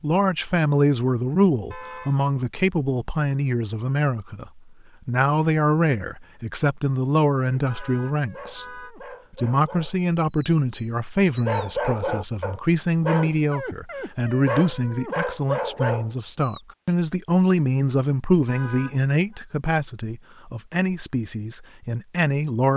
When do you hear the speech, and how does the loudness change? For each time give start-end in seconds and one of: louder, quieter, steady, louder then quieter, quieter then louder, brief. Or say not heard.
0.0-22.7 steady.